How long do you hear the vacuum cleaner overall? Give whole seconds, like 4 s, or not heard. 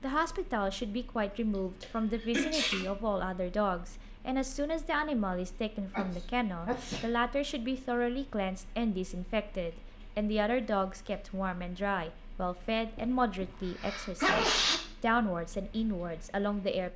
not heard.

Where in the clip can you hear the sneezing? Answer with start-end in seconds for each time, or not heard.
1.8-2.9, 5.9-7.1, 12.9-14.8.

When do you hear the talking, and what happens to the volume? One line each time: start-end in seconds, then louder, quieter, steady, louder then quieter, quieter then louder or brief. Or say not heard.
0.0-16.9 steady.